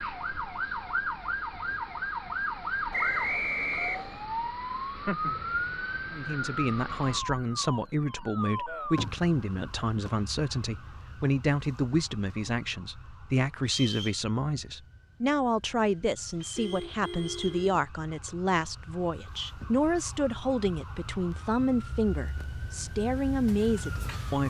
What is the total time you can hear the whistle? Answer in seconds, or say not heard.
3 s.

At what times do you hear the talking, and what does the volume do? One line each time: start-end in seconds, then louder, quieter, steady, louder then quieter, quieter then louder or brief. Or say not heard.
6.1-24.4 steady.